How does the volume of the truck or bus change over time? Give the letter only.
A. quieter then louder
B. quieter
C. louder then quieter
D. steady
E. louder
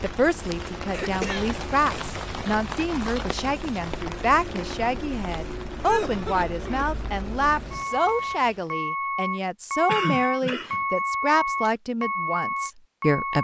E.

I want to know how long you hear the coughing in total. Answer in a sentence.
You can hear the coughing for 3 seconds altogether.